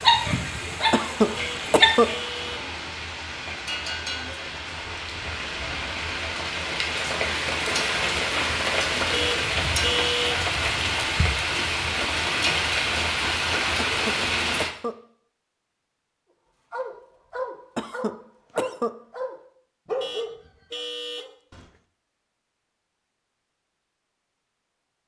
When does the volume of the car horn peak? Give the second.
10 s.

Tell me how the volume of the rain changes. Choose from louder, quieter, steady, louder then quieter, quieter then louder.
louder.